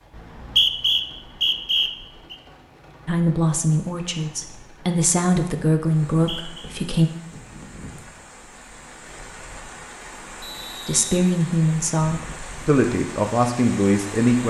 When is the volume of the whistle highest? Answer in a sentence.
The volume of the whistle peaks at 1 second.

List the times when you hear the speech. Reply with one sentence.
The speech can be heard from 3.0 to 7.1 s and from 10.8 to 14.4 s.